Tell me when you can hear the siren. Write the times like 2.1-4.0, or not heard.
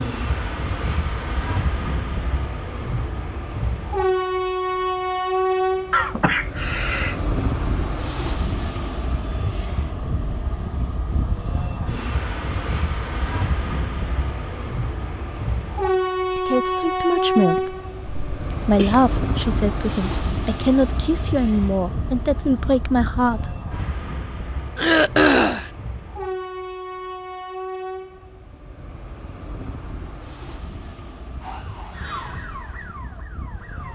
31.4-33.9.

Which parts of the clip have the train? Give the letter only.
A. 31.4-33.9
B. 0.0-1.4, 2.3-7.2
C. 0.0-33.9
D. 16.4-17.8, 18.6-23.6
C.